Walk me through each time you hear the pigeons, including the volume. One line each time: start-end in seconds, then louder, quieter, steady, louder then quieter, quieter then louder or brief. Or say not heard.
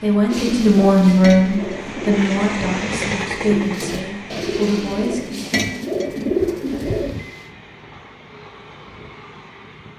0.3-7.2 louder.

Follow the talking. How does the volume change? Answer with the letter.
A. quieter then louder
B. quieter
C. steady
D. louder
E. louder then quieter
B.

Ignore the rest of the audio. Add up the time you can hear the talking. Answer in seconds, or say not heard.
5 s.